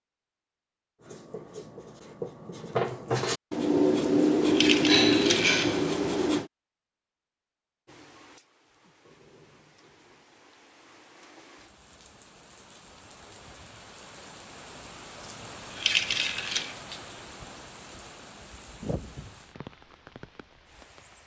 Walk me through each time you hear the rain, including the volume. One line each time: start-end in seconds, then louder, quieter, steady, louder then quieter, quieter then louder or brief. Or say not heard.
7.8-21.2 louder.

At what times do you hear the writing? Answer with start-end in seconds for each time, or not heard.
1.0-6.5.